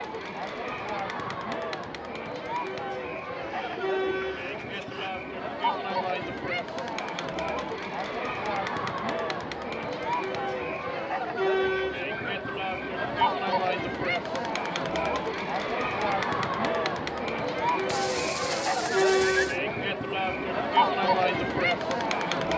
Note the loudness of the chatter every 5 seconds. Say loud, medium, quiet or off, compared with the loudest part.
medium, medium, loud, loud, loud.